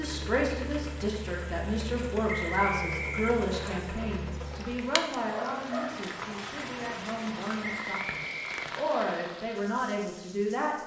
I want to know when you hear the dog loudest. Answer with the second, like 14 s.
6 s.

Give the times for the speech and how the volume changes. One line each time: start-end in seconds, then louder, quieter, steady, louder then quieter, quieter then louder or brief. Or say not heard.
0.0-10.8 quieter then louder.